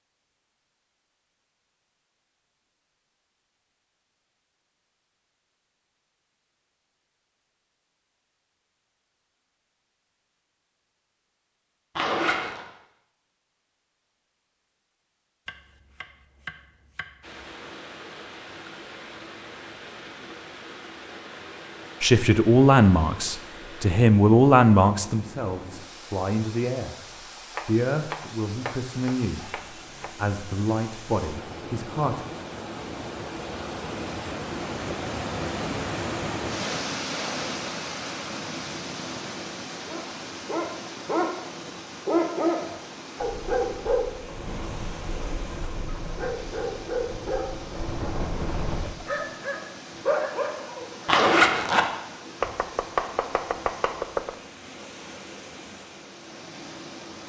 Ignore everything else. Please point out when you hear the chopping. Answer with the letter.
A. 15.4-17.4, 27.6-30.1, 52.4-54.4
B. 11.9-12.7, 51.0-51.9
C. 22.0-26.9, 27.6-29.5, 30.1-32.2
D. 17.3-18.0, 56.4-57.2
A.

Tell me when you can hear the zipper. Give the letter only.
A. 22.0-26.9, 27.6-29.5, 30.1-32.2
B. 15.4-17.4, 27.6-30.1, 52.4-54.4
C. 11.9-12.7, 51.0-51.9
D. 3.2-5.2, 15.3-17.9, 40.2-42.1
C.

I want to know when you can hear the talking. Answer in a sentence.
The talking can be heard from 22.0 to 26.9 s, from 27.6 to 29.5 s and from 30.1 to 32.2 s.